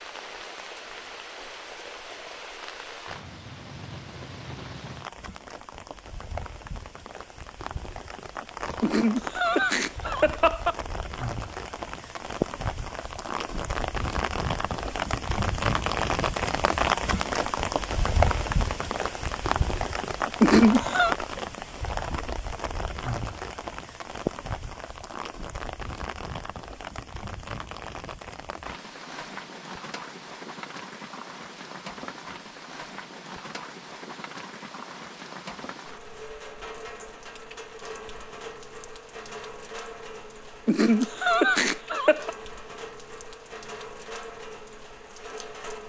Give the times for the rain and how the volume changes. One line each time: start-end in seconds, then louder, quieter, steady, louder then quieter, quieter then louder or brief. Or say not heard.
0.0-45.8 louder then quieter.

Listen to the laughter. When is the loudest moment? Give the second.
21 s.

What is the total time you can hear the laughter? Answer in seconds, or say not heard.
4 s.